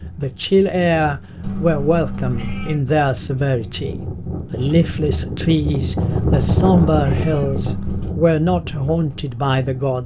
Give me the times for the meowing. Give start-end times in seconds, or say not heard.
1.4-2.8, 6.1-8.1.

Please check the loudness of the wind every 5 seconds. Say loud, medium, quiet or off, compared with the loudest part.
medium, loud.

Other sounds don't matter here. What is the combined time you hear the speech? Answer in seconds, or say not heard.
10 s.